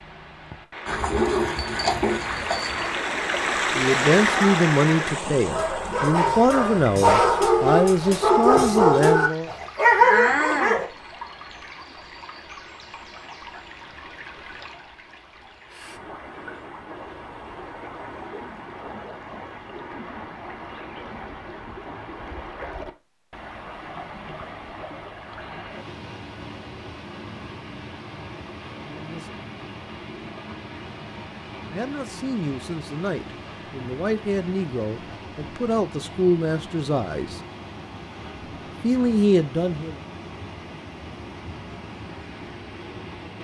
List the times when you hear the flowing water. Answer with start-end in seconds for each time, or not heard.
0.0-43.4.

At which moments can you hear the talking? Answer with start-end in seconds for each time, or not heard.
3.8-9.5, 28.8-29.4, 31.7-37.4, 38.8-40.0.